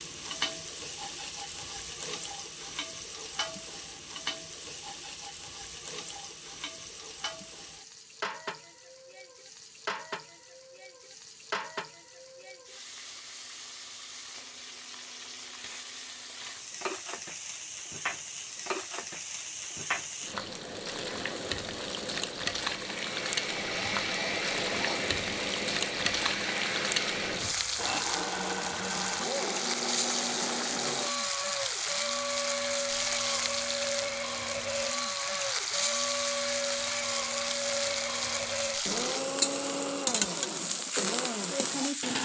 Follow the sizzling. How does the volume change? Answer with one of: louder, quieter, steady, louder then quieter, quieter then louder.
louder.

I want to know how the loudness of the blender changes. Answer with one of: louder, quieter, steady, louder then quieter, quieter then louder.
steady.